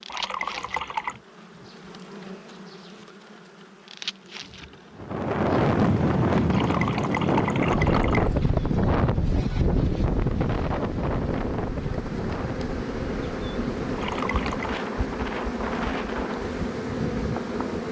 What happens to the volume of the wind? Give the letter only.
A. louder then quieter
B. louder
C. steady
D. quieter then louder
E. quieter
E.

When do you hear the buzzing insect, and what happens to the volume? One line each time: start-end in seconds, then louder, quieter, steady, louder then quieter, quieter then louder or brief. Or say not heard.
0.0-17.8 louder.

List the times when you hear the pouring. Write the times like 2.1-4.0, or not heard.
0.1-1.2, 6.5-8.3, 13.9-14.8.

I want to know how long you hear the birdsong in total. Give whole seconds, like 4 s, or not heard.
not heard.